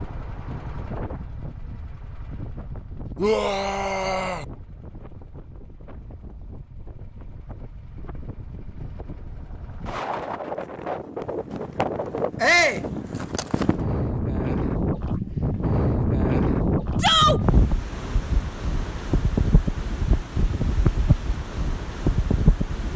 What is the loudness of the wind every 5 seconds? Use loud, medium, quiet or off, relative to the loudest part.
quiet, quiet, loud, loud, loud.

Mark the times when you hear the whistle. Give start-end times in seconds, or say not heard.
not heard.